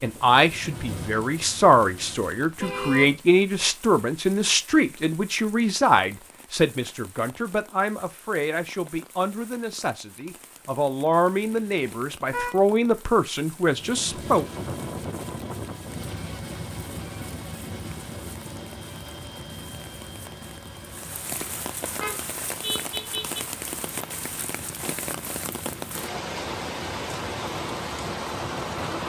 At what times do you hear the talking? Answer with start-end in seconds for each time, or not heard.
0.0-14.4.